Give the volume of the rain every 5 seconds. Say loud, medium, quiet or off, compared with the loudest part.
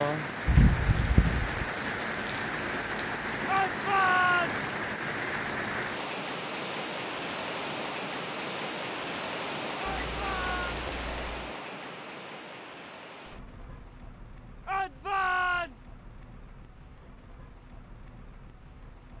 loud, loud, medium, quiet.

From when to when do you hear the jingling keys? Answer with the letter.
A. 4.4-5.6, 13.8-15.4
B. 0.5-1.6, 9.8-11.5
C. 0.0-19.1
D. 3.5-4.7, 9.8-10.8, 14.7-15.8
B.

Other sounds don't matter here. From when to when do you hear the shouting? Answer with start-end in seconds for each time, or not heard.
3.5-4.7, 9.8-10.8, 14.7-15.8.